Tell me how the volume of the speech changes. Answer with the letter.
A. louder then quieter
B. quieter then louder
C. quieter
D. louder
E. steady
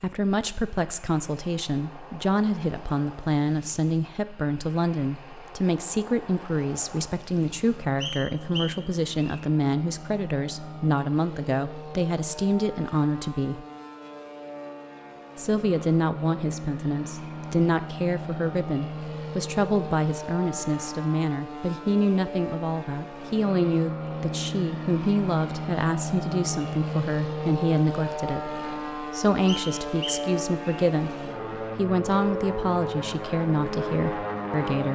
E.